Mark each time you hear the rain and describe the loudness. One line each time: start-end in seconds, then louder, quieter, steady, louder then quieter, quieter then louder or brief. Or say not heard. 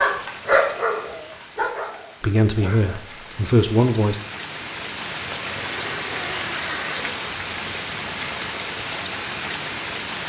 0.0-10.2 louder.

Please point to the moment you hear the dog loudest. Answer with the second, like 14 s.
1 s.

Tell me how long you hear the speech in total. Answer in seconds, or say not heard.
2 s.